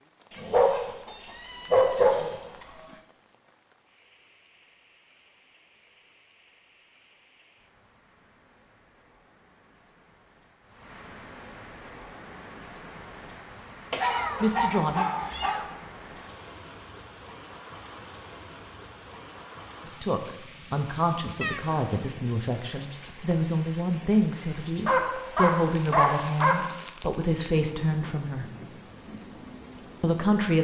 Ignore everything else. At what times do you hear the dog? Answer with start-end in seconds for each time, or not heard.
0.3-2.6, 13.9-15.6, 24.9-26.6.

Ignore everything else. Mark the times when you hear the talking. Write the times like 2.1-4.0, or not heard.
14.4-15.1, 19.9-28.4, 30.0-30.5.